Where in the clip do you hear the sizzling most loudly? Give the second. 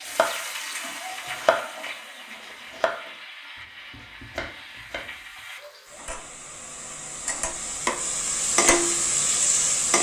9 s.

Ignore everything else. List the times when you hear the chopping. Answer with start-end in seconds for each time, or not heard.
0.1-0.5, 1.1-5.2.